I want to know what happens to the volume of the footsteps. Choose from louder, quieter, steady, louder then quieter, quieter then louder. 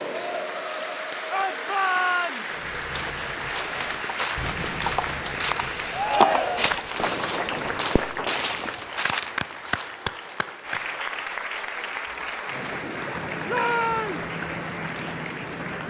louder then quieter.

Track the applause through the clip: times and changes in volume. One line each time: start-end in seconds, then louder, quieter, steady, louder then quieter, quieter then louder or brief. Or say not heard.
0.0-15.8 steady.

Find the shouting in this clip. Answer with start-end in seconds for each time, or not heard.
1.3-2.6, 5.9-6.8, 13.4-14.2.